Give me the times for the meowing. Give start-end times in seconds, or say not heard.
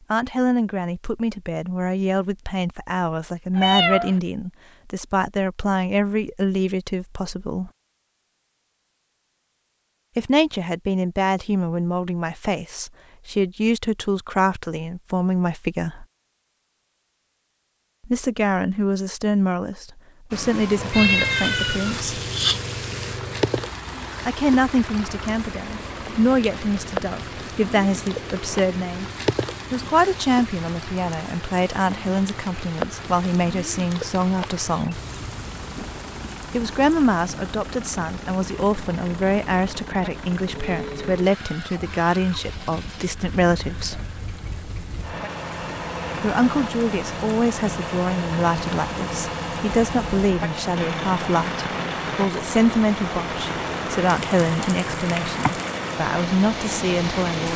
3.5-4.2, 20.9-22.6, 54.6-55.5.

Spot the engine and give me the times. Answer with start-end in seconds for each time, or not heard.
20.8-57.5.